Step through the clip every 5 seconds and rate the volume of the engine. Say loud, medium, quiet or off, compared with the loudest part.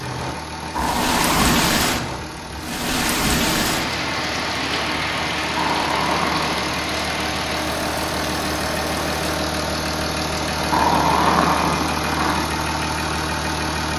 medium, loud, loud.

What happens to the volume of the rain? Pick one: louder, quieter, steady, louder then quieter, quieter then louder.
quieter.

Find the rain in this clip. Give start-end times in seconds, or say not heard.
0.0-9.2.